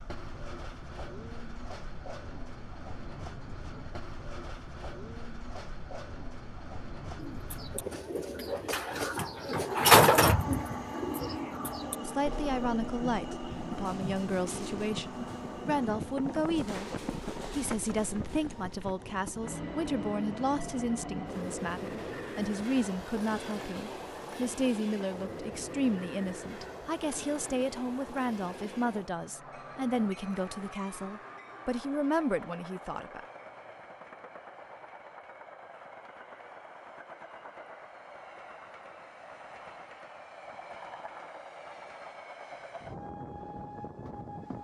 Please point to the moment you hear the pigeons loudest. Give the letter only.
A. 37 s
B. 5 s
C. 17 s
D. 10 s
D.